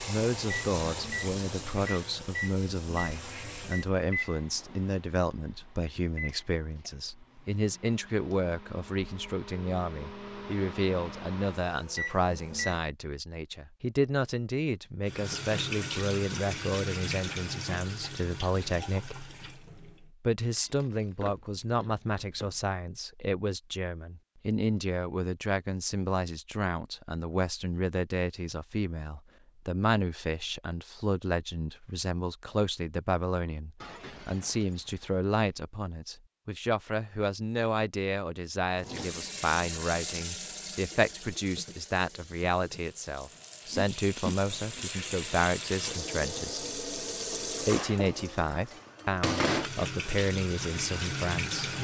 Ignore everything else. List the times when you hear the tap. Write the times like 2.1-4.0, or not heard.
0.0-3.9, 15.1-20.1, 38.8-51.8.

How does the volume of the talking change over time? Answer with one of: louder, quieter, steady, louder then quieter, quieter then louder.
steady.